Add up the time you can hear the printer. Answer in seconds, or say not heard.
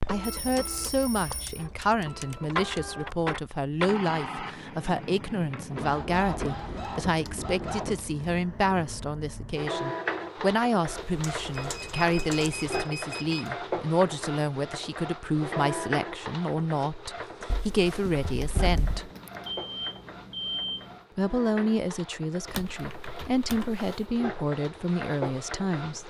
26 s.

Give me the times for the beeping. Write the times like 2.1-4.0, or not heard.
0.2-1.6, 11.6-13.5, 18.4-21.1.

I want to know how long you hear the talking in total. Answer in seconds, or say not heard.
24 s.